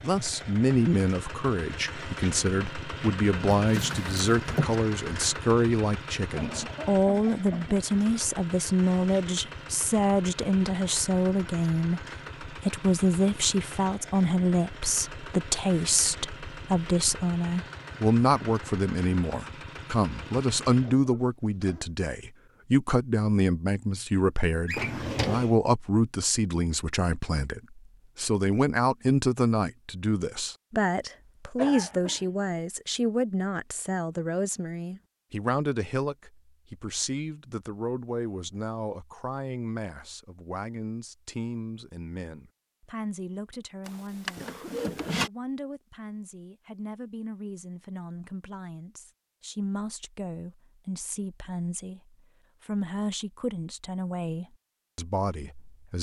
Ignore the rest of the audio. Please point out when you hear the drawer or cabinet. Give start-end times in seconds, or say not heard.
3.6-4.8, 24.6-25.6, 43.9-45.3.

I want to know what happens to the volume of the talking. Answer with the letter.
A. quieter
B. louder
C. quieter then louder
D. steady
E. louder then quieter
A.